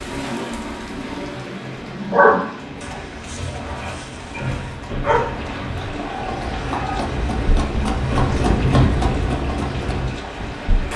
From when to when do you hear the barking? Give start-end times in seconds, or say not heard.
1.8-7.0.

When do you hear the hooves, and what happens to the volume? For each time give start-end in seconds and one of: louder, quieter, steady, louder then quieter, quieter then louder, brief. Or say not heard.
2.7-10.2 louder.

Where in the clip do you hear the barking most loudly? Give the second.
2 s.